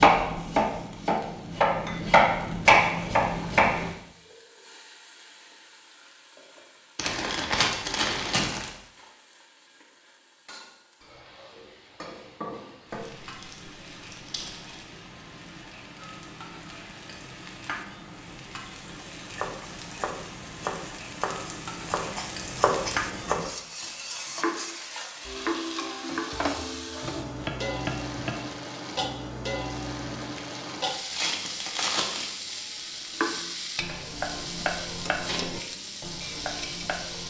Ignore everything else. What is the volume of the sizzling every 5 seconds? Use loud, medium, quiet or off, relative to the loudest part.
quiet, quiet, medium, medium, loud, loud, loud, loud.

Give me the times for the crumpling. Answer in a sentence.
The crumpling can be heard from 7.0 to 8.7 s, from 12.9 to 14.8 s and from 30.4 to 32.4 s.